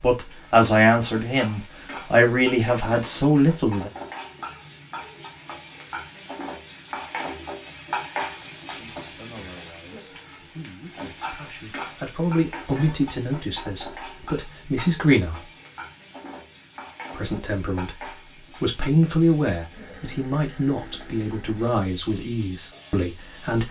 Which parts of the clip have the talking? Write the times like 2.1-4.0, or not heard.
0.0-3.9, 8.7-15.4, 17.1-23.6.